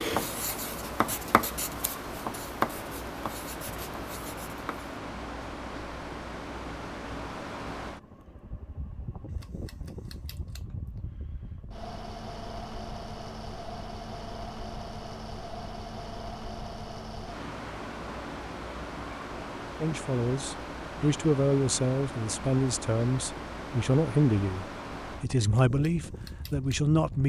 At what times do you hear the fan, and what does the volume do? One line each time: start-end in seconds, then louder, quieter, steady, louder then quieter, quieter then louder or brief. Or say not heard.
0.0-27.2 steady.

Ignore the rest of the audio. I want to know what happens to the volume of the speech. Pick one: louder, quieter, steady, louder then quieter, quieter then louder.
steady.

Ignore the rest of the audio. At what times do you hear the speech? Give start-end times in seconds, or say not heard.
19.8-27.2.